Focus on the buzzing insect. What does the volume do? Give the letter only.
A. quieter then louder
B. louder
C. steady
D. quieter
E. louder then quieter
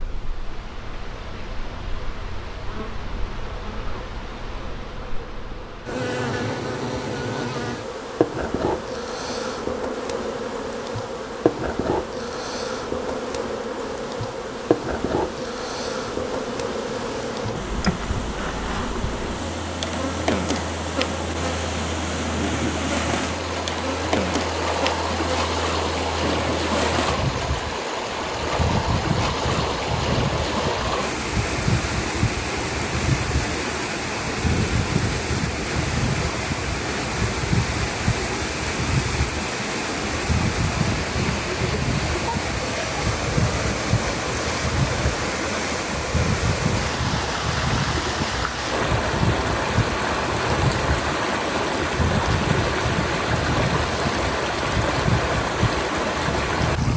C.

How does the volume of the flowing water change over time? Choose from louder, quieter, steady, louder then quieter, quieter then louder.
louder.